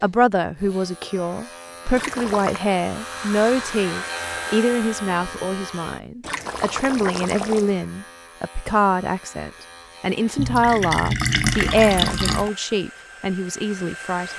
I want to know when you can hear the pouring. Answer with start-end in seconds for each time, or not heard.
1.9-2.6, 6.2-7.7, 10.3-12.5.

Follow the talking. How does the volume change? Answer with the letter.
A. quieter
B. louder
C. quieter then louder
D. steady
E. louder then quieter
D.